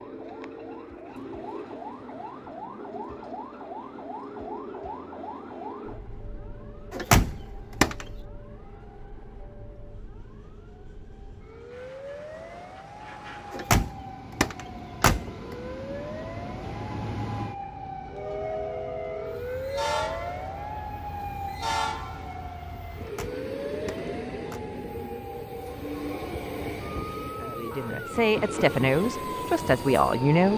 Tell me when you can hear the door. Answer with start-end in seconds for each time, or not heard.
6.9-8.1, 13.5-15.3, 23.0-24.6.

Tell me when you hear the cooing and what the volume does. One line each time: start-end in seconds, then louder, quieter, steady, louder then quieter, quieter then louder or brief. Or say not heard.
not heard.